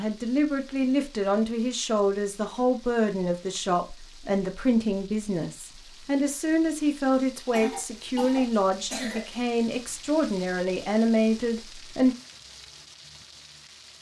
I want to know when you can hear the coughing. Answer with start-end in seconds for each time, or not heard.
7.5-9.2.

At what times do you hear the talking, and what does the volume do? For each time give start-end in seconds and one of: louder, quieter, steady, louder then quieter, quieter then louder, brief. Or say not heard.
0.0-12.2 steady.